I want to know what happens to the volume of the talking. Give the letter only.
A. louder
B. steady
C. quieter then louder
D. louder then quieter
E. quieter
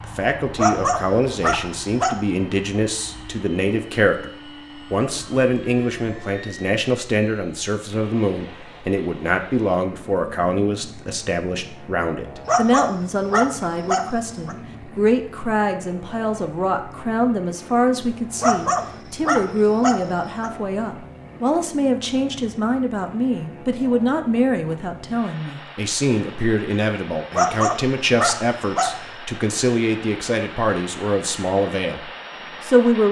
B.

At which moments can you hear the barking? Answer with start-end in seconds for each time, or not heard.
0.6-2.2, 12.4-14.6, 18.4-20.5, 27.3-29.1.